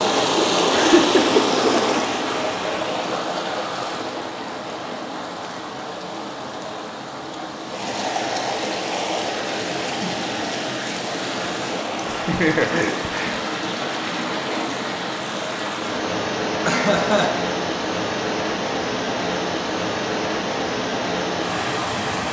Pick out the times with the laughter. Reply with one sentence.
You can hear the laughter from 0.7 to 2.0 s, from 12.1 to 13.3 s and from 16.6 to 17.4 s.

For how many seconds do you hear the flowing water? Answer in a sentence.
You can hear the flowing water for 22 seconds altogether.